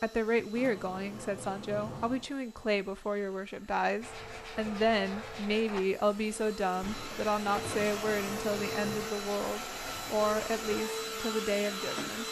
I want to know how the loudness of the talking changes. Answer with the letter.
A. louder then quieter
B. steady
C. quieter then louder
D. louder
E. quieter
B.